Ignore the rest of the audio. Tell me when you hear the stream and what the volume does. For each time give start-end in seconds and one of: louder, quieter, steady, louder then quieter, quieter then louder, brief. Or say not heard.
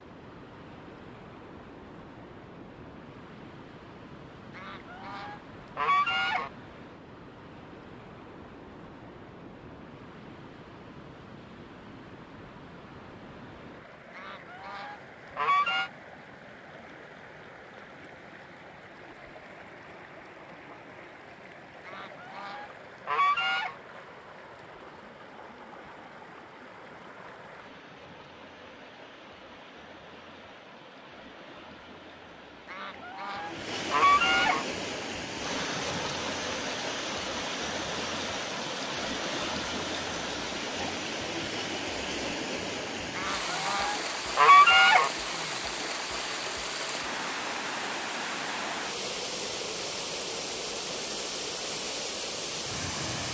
0.0-53.2 louder.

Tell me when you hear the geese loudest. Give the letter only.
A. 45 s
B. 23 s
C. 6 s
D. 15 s
A.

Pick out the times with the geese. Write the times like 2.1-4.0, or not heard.
4.5-6.5, 14.2-15.9, 21.9-23.8, 32.7-34.6, 43.1-45.1.